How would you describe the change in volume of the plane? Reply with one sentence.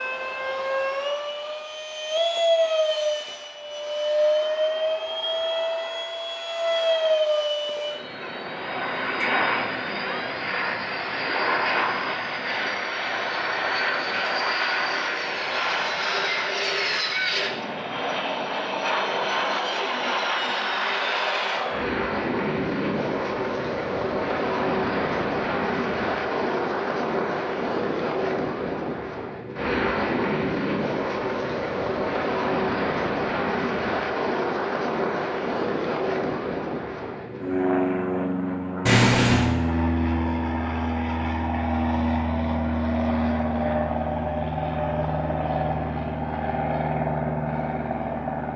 The loudness of the plane stays about the same.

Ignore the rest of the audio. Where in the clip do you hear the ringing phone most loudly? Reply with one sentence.
The loudest moment of the ringing phone is at 39 seconds.